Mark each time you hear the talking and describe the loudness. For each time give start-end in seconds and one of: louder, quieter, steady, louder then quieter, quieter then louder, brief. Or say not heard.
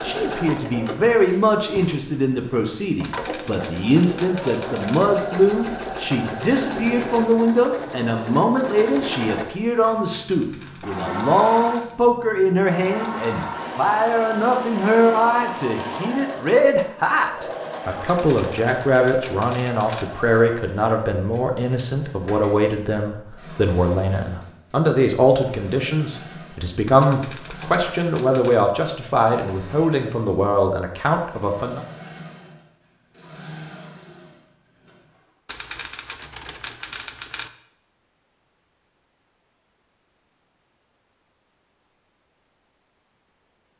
0.0-31.8 steady.